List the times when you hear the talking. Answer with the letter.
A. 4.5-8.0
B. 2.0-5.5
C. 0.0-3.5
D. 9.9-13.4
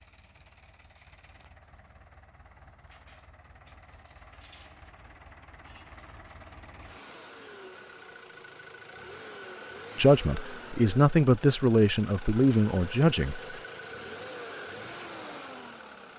D.